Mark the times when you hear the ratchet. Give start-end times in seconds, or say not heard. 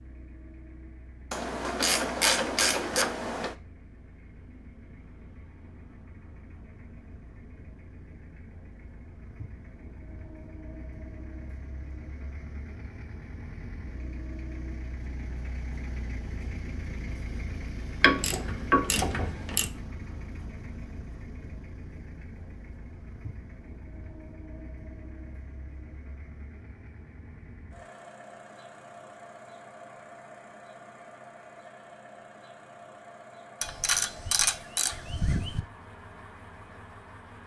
1.3-3.5, 18.0-19.7, 33.6-35.6.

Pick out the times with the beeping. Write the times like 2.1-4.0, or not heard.
not heard.